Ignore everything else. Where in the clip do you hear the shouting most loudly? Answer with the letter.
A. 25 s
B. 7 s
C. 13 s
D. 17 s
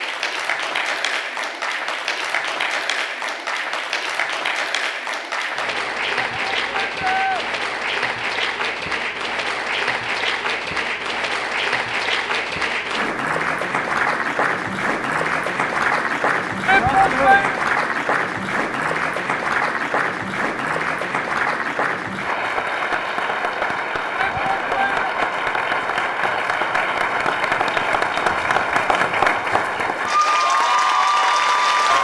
D.